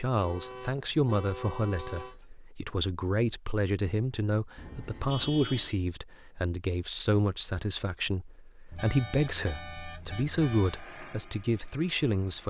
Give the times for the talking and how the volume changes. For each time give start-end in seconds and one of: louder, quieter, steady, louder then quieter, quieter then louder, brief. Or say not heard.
0.0-12.4 steady.